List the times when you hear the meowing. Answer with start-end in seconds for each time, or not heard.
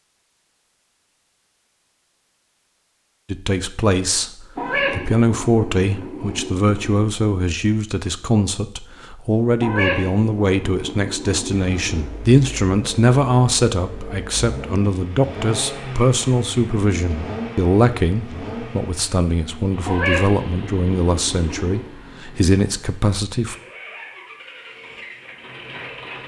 4.5-7.0, 9.6-12.1, 19.9-21.9.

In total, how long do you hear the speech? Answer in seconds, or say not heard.
20 s.